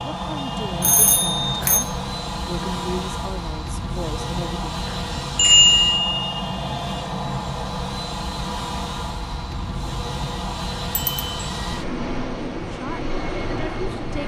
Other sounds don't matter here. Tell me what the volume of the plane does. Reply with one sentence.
The volume of the plane stays about the same.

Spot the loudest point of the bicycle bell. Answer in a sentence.
The loudest moment of the bicycle bell is at 6 seconds.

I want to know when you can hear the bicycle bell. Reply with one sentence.
The bicycle bell can be heard from 0.8 to 1.9 s, from 5.3 to 6.2 s and from 10.9 to 11.4 s.